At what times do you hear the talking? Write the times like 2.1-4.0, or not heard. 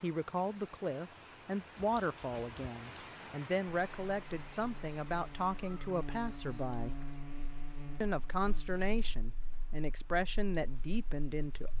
0.0-7.0, 8.0-11.7.